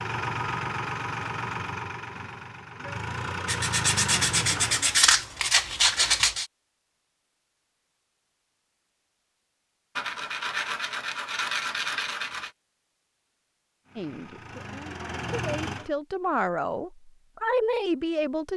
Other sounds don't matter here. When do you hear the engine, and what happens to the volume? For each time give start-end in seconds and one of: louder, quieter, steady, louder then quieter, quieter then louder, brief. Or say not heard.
0.0-5.0 quieter then louder
13.8-15.9 brief.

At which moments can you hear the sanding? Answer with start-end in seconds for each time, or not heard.
3.5-6.5, 9.9-12.5.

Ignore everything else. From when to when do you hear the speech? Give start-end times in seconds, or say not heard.
13.9-18.5.